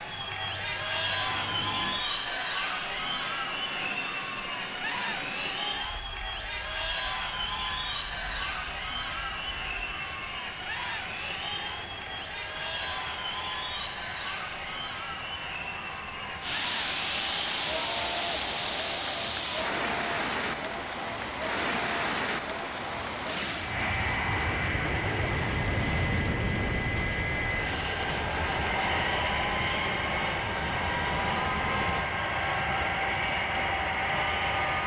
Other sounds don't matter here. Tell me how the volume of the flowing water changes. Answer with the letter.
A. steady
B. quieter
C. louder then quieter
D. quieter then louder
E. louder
B.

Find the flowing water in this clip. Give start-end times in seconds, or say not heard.
16.4-34.6.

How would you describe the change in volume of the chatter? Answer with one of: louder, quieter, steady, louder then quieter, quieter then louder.
quieter.